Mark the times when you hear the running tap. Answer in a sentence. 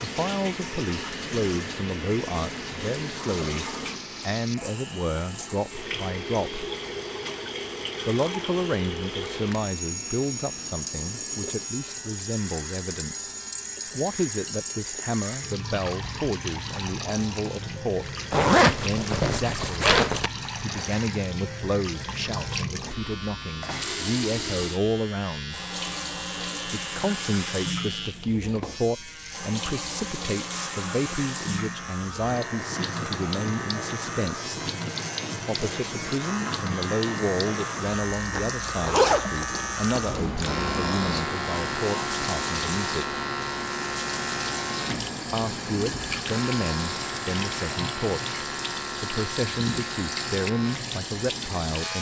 The running tap can be heard from 0.0 to 51.9 s.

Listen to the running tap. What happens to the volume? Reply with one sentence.
The volume of the running tap stays about the same.